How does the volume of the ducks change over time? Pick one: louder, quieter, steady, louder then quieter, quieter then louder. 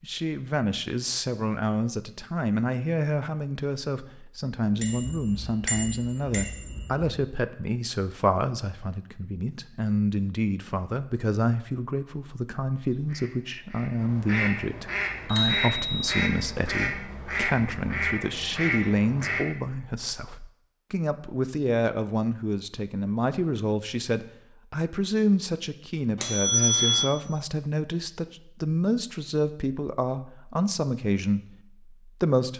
louder.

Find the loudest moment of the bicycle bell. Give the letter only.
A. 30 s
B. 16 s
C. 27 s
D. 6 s
C.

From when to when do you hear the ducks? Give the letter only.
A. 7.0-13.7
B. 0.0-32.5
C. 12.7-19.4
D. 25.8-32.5
C.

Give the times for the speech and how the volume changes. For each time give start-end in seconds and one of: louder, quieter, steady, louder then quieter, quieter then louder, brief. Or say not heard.
0.0-32.5 steady.